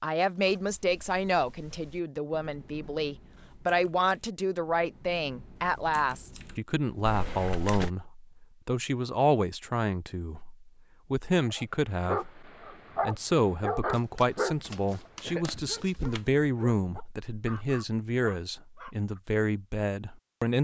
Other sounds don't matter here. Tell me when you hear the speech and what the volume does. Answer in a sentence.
You can hear the speech from 0.0 to 20.5 s, at a steady volume.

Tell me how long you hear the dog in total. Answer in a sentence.
You can hear the dog for 8 seconds altogether.